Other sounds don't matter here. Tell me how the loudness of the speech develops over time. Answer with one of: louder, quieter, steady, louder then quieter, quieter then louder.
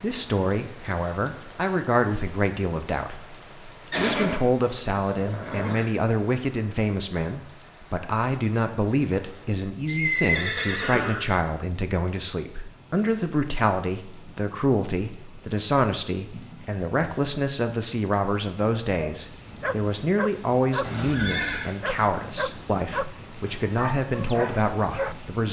steady.